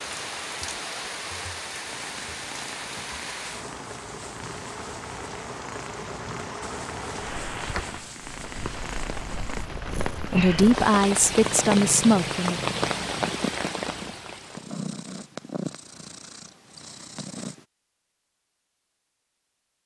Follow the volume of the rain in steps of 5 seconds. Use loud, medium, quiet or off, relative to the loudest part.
medium, medium, loud, off.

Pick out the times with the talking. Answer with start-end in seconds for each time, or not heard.
10.3-12.6.